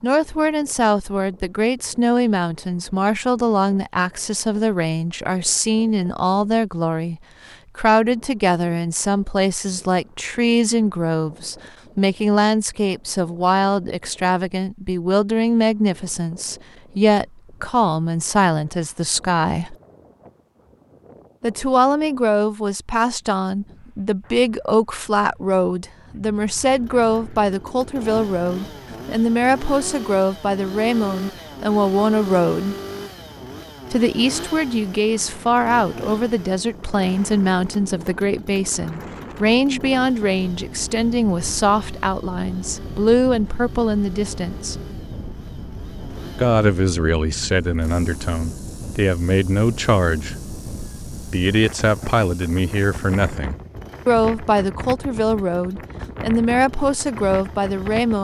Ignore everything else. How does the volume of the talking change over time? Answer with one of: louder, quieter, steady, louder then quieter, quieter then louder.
steady.